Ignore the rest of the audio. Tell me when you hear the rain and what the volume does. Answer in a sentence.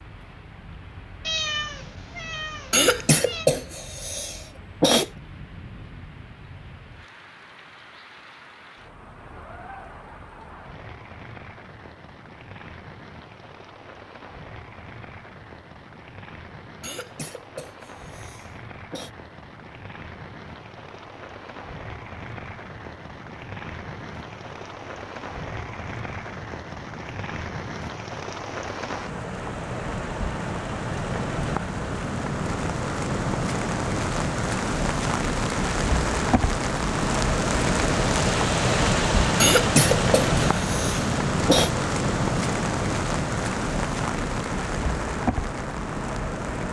You can hear the rain from 0.0 to 46.6 s, getting louder.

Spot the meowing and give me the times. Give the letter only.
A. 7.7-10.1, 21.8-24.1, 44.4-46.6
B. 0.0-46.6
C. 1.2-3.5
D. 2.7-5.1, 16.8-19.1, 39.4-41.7
C.